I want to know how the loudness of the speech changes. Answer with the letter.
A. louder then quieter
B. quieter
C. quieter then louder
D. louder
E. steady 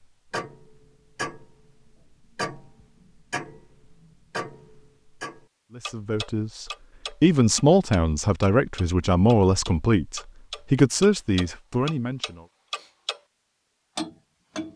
E.